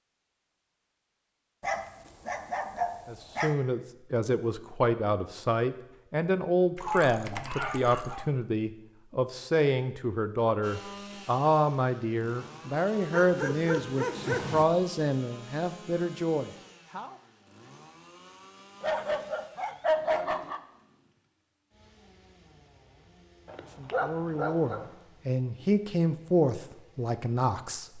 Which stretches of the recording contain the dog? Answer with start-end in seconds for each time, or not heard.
1.6-3.5, 6.8-8.2, 13.1-14.7, 18.8-20.6, 23.4-24.9.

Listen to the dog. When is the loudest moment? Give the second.
20 s.